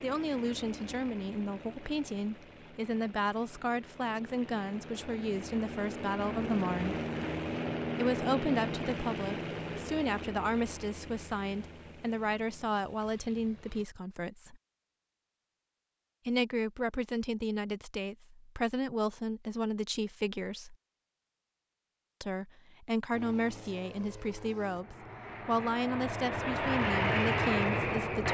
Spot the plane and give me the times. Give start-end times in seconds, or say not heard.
0.0-13.8, 23.1-28.3.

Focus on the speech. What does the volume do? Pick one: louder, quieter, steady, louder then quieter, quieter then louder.
steady.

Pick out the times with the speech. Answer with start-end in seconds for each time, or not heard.
0.0-7.0, 8.0-14.6, 16.2-20.8, 22.2-28.3.